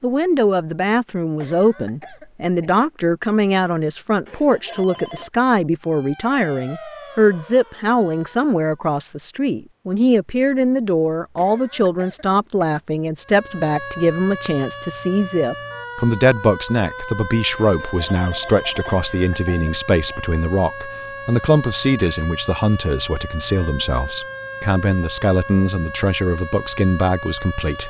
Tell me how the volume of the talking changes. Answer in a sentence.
The volume of the talking stays about the same.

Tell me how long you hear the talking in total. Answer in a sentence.
You can hear the talking for 28 seconds altogether.